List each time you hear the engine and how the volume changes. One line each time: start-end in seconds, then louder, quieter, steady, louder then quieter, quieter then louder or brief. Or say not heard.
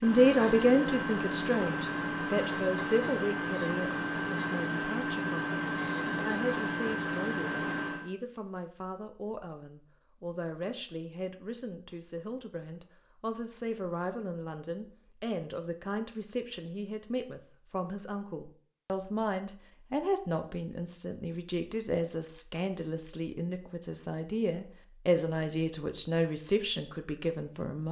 0.0-8.1 steady.